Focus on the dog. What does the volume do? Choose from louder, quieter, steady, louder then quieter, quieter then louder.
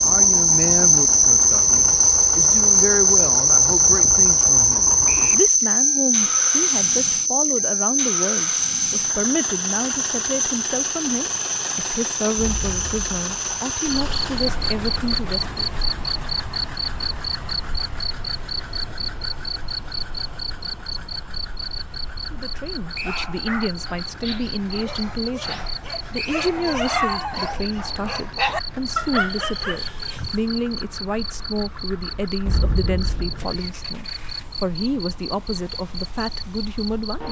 louder.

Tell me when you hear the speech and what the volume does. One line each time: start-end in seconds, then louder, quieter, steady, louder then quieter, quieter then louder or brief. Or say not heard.
0.0-15.7 steady
22.3-37.2 steady.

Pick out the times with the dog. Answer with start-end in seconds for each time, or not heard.
22.9-30.4.